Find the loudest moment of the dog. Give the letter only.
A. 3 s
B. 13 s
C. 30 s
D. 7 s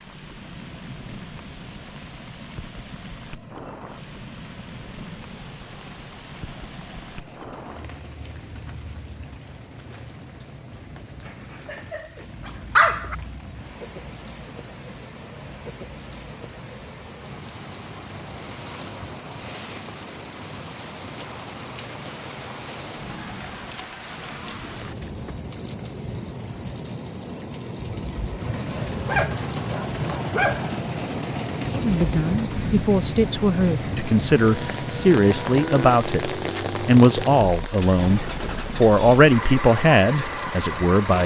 B.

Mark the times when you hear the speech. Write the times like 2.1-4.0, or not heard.
31.8-41.2.